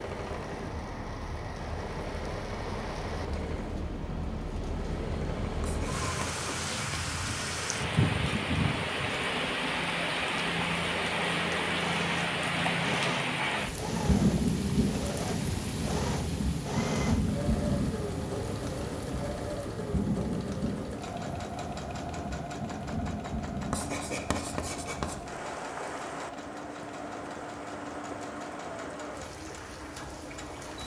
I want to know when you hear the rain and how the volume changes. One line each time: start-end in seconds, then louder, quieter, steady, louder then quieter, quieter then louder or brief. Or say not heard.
0.0-30.8 louder then quieter.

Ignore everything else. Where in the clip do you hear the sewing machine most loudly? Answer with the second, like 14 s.
17 s.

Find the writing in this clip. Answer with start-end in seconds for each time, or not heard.
5.6-7.1, 23.7-25.1.